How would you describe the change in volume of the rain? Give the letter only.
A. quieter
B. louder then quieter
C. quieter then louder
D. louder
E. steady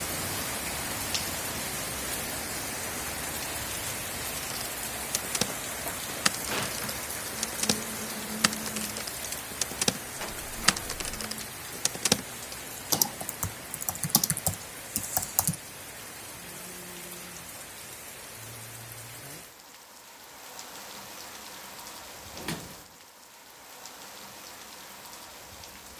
A.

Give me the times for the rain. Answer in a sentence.
You can hear the rain from 0.0 to 25.9 s.